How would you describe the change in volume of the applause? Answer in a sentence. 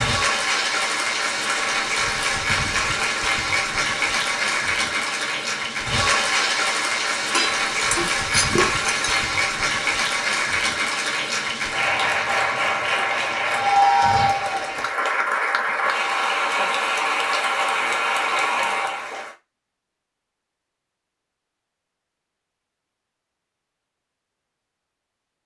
The volume of the applause stays about the same.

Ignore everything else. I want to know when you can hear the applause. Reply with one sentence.
The applause can be heard from 0.0 to 19.4 s.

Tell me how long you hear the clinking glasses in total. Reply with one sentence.
You can hear the clinking glasses for 2 seconds altogether.